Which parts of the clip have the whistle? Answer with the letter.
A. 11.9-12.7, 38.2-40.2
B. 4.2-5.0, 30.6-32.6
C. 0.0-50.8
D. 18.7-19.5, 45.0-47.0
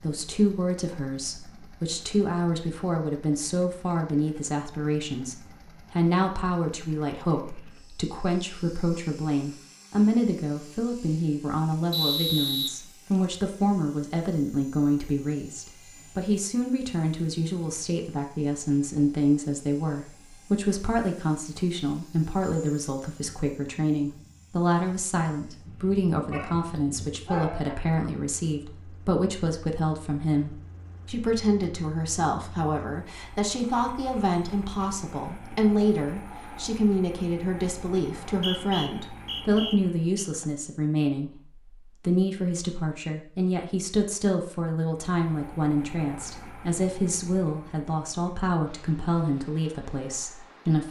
A.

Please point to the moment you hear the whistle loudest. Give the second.
12 s.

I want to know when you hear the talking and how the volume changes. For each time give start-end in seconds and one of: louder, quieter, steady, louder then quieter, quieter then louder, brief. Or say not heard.
0.0-50.8 steady.